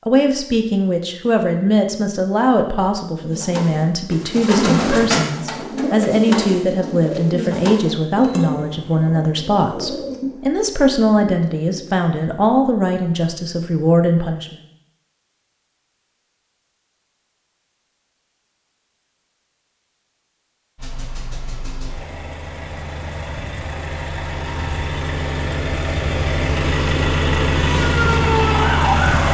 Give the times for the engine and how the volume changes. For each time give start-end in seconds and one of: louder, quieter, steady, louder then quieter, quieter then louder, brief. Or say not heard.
20.8-29.3 louder.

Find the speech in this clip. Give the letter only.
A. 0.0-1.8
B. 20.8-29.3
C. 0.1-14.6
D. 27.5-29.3
C.